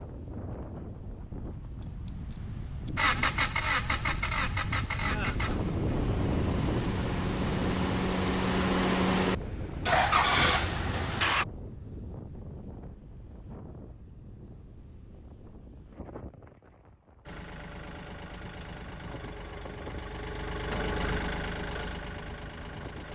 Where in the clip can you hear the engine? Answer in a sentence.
You can hear the engine from 3.0 to 11.4 s and from 17.2 to 23.1 s.